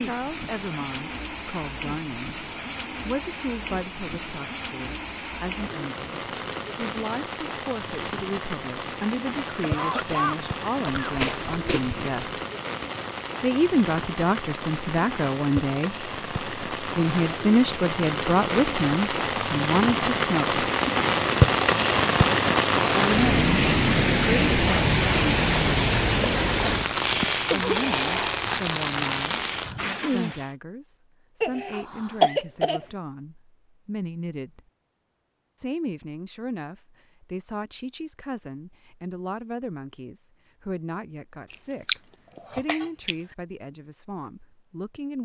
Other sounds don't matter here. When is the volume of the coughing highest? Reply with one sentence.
The loudest moment of the coughing is at 32 seconds.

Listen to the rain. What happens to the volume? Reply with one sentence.
The volume of the rain goes up.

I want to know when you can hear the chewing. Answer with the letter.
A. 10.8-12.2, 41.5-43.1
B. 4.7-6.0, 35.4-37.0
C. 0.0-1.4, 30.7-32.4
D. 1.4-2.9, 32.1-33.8
A.